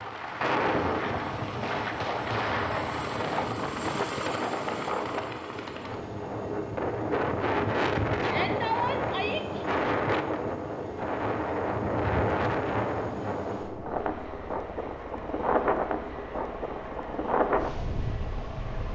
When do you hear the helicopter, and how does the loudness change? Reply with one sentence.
The helicopter can be heard from 0.0 to 18.9 s, getting quieter.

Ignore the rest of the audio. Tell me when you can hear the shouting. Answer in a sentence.
You can hear the shouting from 8.2 to 9.7 s.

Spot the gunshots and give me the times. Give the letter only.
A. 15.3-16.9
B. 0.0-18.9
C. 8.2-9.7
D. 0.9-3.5
D.